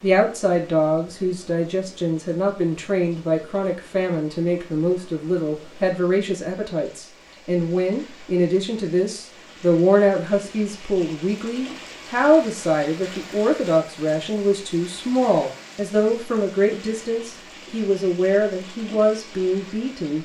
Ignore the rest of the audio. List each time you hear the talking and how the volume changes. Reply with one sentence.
The talking can be heard from 0.0 to 20.2 s, at a steady volume.